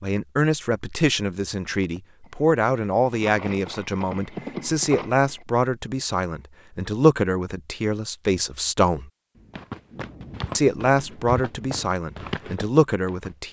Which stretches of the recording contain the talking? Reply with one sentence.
The talking can be heard from 0.0 to 9.1 s and from 10.6 to 13.4 s.